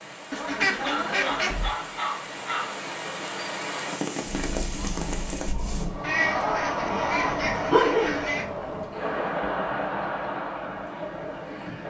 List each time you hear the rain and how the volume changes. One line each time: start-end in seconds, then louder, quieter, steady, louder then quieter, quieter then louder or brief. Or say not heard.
0.0-11.8 louder then quieter.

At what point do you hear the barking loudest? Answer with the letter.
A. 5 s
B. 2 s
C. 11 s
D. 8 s
D.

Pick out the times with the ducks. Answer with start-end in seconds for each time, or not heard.
0.3-1.7, 6.0-8.4.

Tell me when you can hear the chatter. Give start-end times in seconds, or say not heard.
4.3-11.8.